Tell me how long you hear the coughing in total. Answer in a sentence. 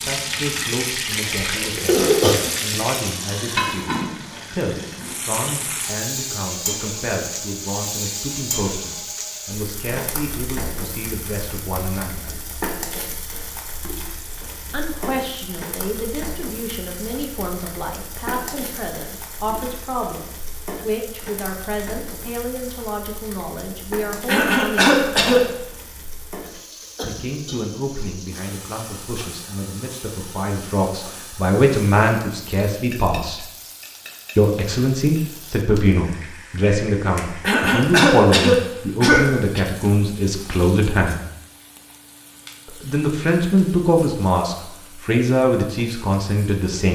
The coughing can be heard for 5 seconds in total.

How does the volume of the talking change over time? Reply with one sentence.
The volume of the talking goes up.